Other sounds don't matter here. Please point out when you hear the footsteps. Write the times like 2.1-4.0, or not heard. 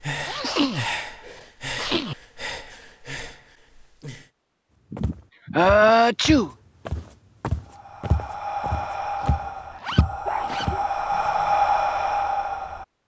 5.0-11.6.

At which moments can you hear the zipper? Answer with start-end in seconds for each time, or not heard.
0.1-0.7, 9.8-10.7.